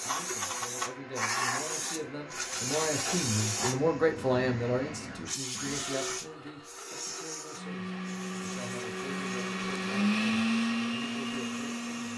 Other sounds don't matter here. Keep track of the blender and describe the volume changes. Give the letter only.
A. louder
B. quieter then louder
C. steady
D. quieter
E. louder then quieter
A.